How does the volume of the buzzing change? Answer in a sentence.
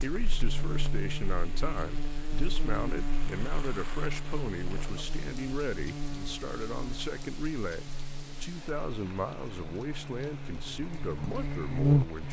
The loudness of the buzzing goes down, then up.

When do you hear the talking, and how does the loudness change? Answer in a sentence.
You can hear the talking from 0.0 to 12.2 s, at a steady volume.